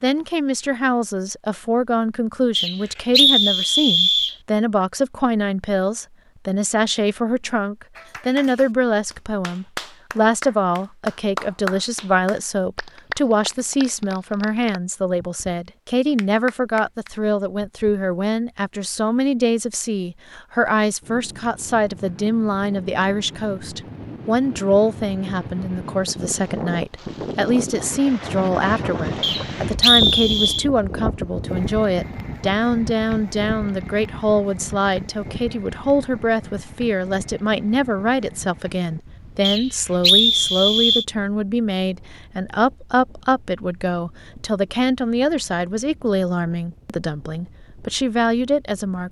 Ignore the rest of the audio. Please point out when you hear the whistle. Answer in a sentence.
The whistle can be heard from 2.5 to 4.3 s, from 29.2 to 30.6 s and from 39.4 to 41.0 s.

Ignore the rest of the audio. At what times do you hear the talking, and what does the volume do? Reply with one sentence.
The talking can be heard from 0.0 to 49.0 s, at a steady volume.